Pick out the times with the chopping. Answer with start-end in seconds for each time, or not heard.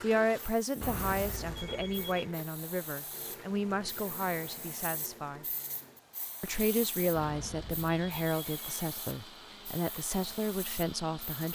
not heard.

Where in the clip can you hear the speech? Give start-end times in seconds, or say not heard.
0.0-5.5, 6.4-11.5.